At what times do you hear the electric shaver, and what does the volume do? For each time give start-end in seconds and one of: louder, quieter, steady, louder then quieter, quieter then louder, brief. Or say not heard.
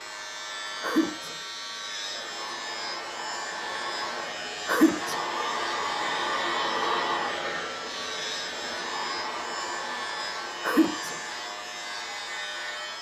0.0-12.9 steady.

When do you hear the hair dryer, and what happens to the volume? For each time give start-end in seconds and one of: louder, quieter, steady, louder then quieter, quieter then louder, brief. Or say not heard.
0.0-12.9 louder then quieter.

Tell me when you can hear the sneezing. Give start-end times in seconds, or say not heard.
0.8-1.4, 4.7-5.2, 10.6-11.2.